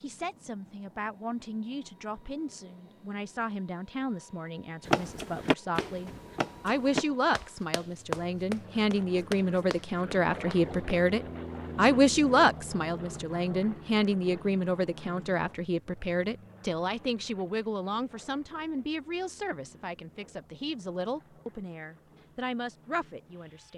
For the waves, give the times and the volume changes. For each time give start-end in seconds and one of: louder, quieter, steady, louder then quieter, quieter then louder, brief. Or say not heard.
not heard.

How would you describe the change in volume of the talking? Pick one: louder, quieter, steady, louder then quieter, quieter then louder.
louder then quieter.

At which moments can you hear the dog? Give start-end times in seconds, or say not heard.
not heard.